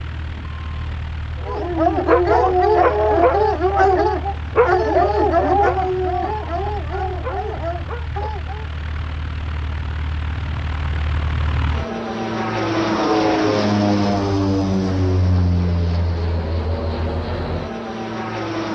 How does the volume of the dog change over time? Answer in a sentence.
The loudness of the dog goes down.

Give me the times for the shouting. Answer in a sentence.
The shouting can't be heard in this clip.